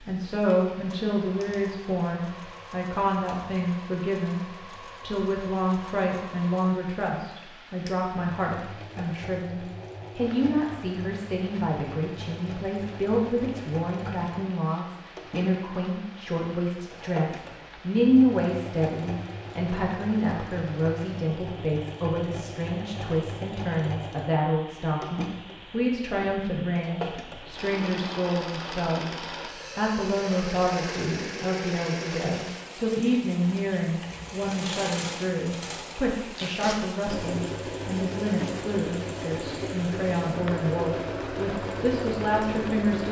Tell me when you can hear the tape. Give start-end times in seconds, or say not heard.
36.3-36.8.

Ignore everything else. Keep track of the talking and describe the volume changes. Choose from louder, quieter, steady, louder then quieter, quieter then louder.
steady.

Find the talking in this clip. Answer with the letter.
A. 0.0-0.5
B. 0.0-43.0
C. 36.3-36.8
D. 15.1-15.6
B.